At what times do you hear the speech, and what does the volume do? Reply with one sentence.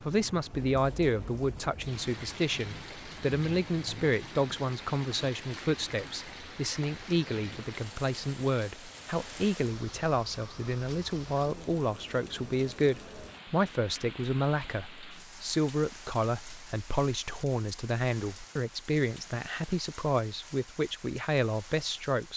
The speech can be heard from 0.0 to 22.3 s, at a steady volume.